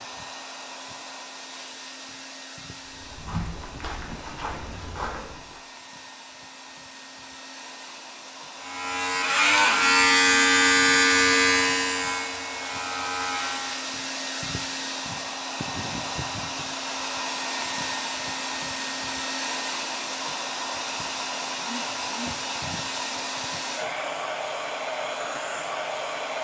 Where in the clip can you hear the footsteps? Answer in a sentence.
The footsteps can be heard from 2.8 to 5.6 s.